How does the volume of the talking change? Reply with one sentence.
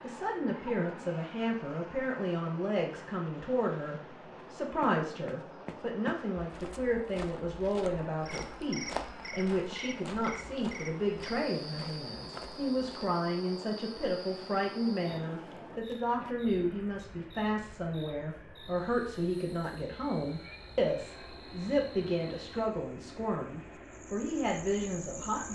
The loudness of the talking stays about the same.